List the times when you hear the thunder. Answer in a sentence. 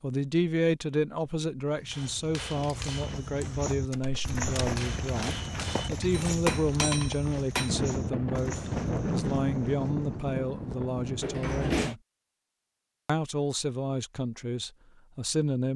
You can hear the thunder from 7.7 to 11.3 s.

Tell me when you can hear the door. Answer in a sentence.
The door can be heard from 3.9 to 4.8 s and from 11.2 to 11.9 s.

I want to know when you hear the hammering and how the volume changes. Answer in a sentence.
The hammering can be heard from 1.9 to 7.8 s, getting quieter then louder.